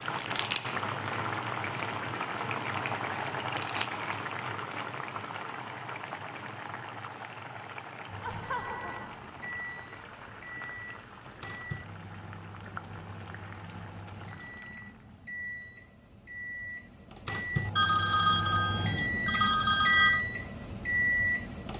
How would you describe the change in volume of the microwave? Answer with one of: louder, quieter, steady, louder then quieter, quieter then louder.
louder.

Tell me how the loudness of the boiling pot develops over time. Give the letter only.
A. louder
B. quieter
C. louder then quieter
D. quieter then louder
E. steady
B.